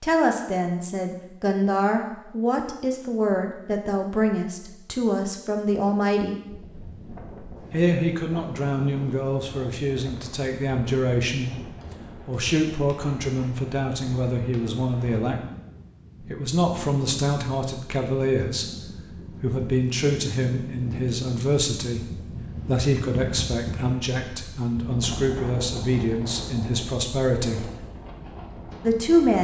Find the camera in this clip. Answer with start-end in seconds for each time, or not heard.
not heard.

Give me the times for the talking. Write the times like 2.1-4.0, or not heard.
0.0-6.3, 7.7-11.6, 12.2-15.4, 16.2-18.7, 19.4-27.6, 28.8-29.3.